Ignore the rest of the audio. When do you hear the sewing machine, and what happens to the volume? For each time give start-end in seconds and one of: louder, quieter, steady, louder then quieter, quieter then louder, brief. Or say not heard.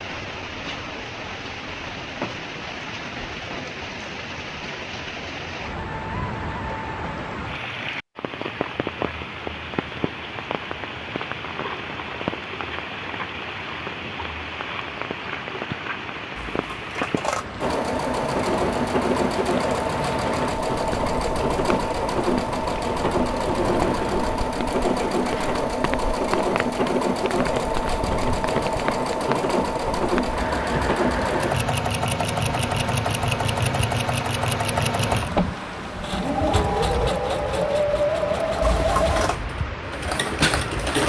17.6-41.0 steady.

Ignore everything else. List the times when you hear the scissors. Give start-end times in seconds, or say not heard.
16.5-17.4, 38.6-39.4.